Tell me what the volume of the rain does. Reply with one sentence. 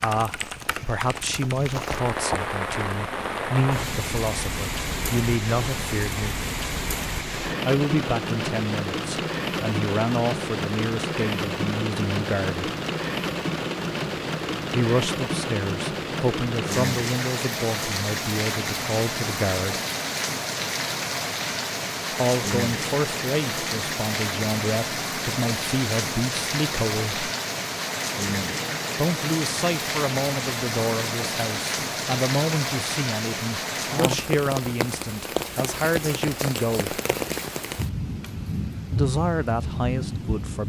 The loudness of the rain stays about the same.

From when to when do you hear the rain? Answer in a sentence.
You can hear the rain from 0.1 to 40.6 s.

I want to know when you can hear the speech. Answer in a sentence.
The speech can be heard from 0.0 to 6.4 s, from 7.7 to 12.7 s, from 14.7 to 19.8 s, from 22.1 to 27.3 s, from 28.9 to 37.0 s and from 38.9 to 40.6 s.